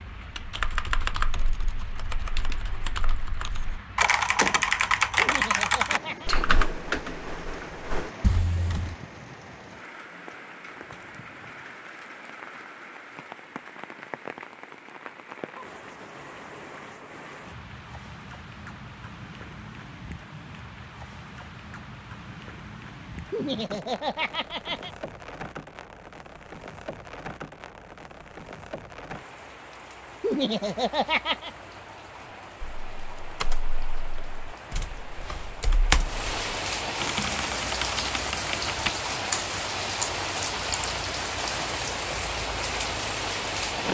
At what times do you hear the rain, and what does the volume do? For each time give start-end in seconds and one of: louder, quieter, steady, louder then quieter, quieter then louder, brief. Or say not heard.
0.0-43.8 louder.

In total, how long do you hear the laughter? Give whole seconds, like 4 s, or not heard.
4 s.